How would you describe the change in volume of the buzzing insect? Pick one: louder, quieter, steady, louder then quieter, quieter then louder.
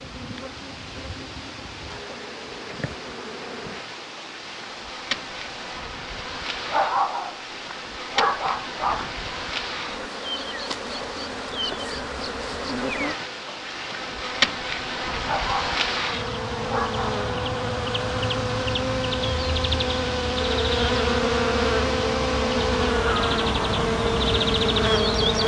louder.